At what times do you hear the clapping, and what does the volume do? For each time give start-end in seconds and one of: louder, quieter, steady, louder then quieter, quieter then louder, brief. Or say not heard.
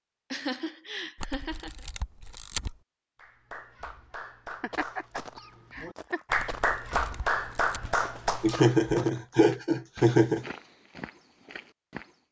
3.1-9.6 louder then quieter.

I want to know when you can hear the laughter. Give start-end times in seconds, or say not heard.
0.3-1.7, 4.6-6.3, 8.4-10.5.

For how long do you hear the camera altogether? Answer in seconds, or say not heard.
3 s.